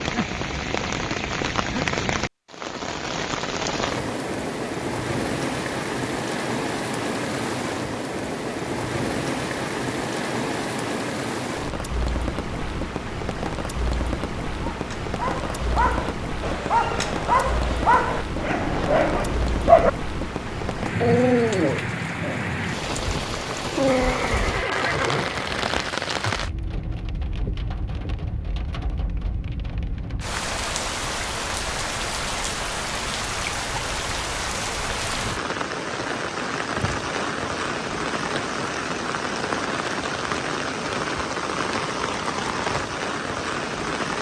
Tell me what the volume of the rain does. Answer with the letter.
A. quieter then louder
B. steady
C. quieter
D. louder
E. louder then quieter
B.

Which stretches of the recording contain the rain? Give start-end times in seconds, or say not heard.
0.0-44.1.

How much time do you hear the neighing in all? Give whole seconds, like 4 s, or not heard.
2 s.